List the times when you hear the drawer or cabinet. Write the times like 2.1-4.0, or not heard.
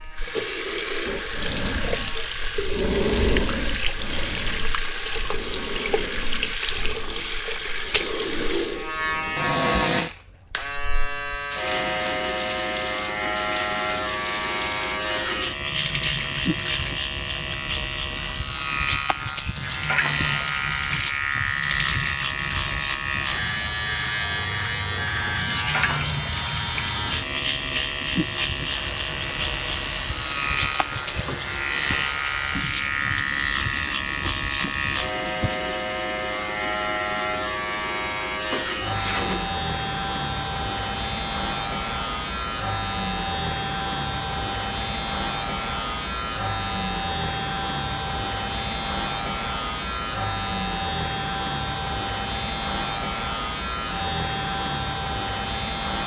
9.3-10.1, 31.2-32.1, 38.5-39.5.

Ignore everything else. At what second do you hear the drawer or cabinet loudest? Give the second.
10 s.